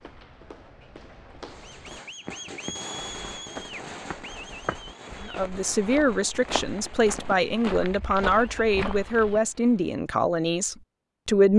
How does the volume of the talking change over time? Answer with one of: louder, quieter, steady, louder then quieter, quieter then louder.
steady.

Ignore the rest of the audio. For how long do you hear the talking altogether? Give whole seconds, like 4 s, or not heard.
6 s.